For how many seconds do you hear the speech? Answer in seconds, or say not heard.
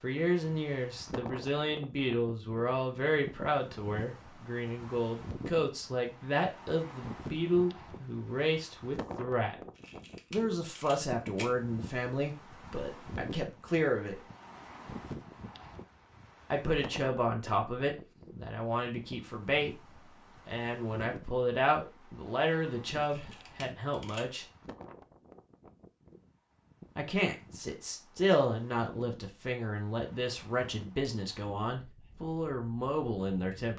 28 s.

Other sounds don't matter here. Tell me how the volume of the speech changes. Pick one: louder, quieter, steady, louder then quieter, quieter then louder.
steady.